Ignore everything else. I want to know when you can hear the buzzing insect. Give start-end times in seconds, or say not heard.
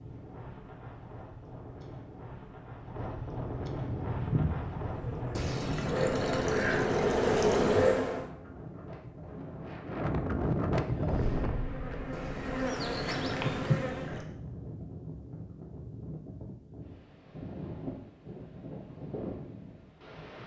3.9-8.2, 10.8-14.1.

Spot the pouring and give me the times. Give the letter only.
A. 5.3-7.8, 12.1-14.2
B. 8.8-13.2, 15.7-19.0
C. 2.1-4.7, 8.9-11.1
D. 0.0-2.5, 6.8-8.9
A.